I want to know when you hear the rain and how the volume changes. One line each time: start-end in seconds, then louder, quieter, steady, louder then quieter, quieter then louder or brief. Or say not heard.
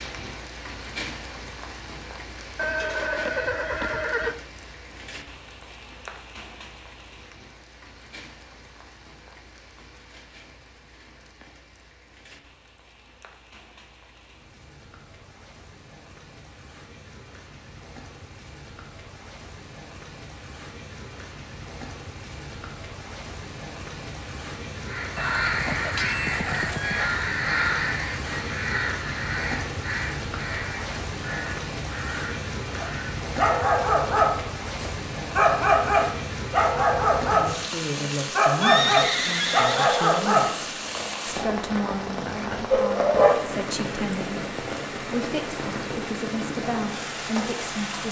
0.0-48.0 quieter then louder.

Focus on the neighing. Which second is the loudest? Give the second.
39 s.